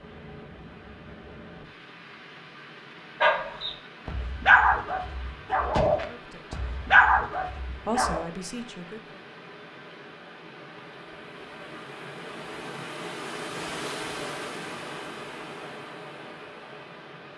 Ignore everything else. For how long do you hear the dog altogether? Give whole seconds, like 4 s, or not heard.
5 s.